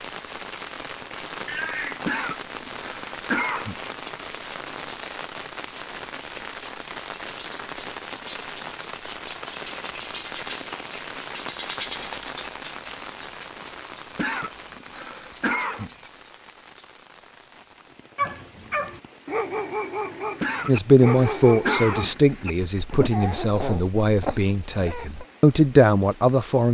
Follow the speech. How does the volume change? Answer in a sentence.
The loudness of the speech goes down, then up.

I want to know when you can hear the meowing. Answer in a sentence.
You can hear the meowing from 1.4 to 2.1 s.